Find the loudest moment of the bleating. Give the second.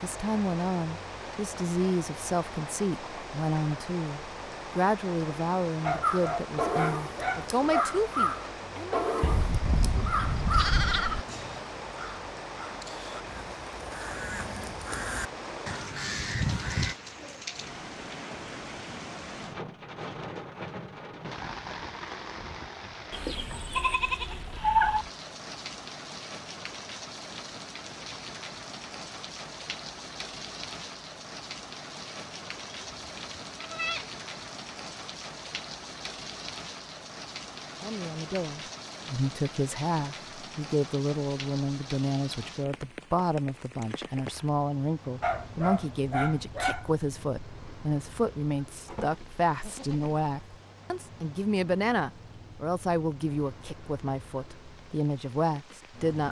25 s.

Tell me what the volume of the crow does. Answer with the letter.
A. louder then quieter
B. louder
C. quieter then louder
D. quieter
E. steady
C.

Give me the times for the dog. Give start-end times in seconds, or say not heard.
5.8-7.8, 45.2-46.9.